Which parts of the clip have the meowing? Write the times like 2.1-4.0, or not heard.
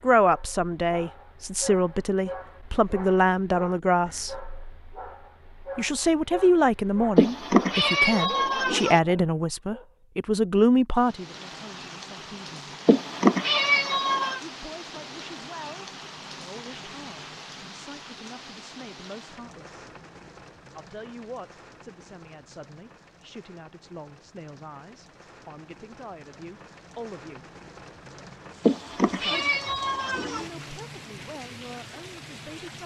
7.2-9.0, 12.8-14.4, 28.6-30.4.